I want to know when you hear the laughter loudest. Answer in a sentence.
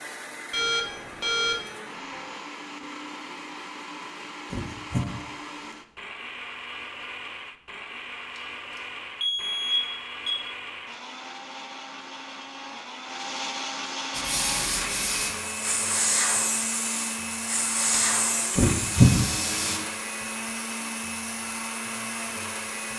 The loudest moment of the laughter is at 19 seconds.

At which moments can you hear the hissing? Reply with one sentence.
You can hear the hissing from 14.1 to 19.8 s.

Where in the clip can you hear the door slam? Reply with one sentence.
You can't hear the door slam here.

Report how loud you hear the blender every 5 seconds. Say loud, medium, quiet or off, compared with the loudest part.
medium, medium, loud, loud, loud.